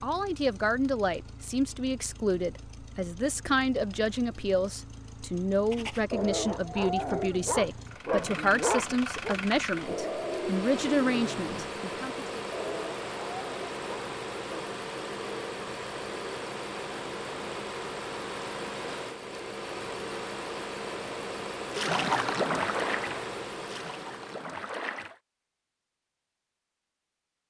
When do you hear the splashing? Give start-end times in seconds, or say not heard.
21.6-25.1.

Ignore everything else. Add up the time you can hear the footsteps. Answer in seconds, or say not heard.
not heard.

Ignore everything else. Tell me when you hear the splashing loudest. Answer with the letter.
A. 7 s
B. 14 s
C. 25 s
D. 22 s
D.